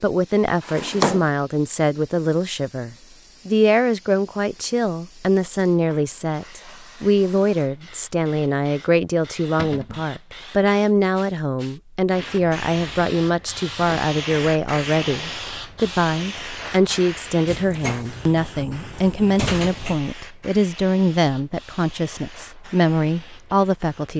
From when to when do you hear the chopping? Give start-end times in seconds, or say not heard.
not heard.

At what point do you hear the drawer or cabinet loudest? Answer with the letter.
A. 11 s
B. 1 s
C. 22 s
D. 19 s
B.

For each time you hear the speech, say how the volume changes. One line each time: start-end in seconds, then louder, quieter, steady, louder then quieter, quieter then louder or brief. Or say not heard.
0.0-24.1 steady.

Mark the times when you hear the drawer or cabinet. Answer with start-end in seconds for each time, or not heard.
0.7-1.2, 9.6-10.1, 17.4-20.0.